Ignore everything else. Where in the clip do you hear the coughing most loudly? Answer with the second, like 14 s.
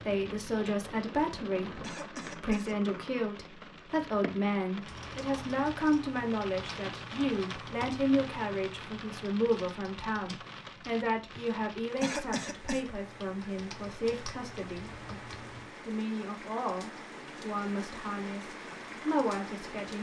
12 s.